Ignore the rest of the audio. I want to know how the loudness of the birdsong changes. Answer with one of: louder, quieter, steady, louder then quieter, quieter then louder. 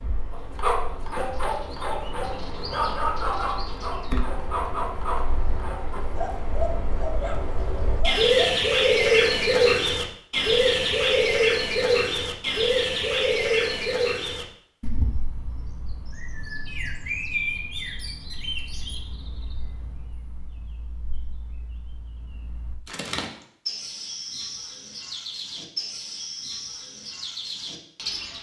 louder then quieter.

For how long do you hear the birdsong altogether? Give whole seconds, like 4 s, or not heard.
28 s.